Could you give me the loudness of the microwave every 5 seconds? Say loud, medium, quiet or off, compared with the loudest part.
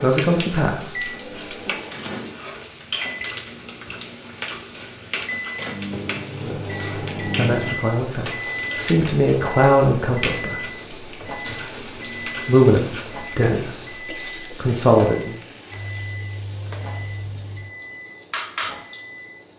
medium, loud, medium, medium.